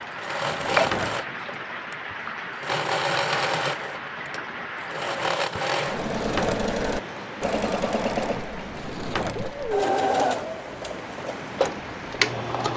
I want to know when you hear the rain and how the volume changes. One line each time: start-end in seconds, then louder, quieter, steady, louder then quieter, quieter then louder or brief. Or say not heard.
0.0-12.7 steady.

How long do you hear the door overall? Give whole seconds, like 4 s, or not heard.
3 s.